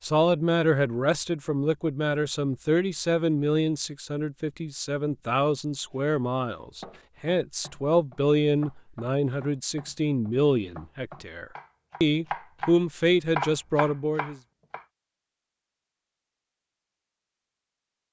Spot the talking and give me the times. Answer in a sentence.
You can hear the talking from 0.0 to 14.4 s.